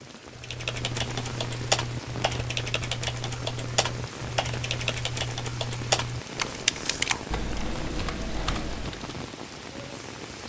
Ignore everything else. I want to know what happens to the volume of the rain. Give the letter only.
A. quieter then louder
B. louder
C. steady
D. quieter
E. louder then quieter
C.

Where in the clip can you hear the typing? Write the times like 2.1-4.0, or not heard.
0.3-9.2.